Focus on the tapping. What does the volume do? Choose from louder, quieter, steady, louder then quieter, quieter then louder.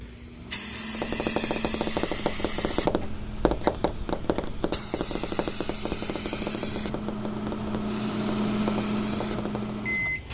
quieter.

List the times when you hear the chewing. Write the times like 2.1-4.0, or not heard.
not heard.